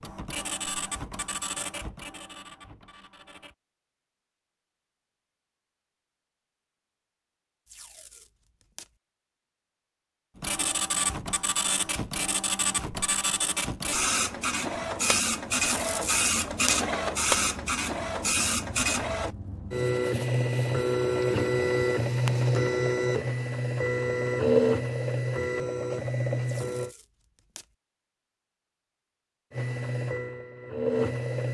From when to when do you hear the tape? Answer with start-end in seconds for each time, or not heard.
7.7-8.9, 15.6-16.9, 26.4-27.8.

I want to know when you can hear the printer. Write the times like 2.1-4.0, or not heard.
0.0-3.5, 10.3-26.9, 29.5-31.4.